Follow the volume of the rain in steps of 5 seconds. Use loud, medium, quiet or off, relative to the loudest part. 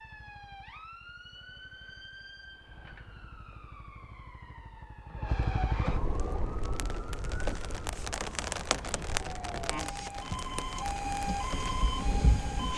off, loud, medium.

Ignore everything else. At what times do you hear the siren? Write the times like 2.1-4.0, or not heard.
0.0-12.7.